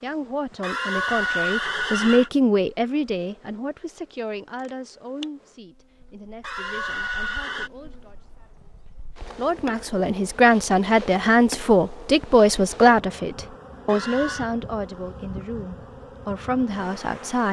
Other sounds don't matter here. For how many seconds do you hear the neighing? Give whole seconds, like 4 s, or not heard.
4 s.